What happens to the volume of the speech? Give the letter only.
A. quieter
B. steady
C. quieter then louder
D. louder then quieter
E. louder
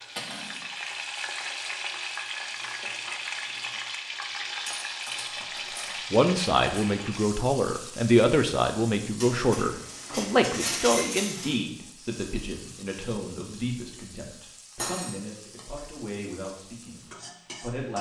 A.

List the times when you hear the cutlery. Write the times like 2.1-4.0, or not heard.
0.1-0.6, 4.7-6.8, 9.2-11.6, 14.8-15.2.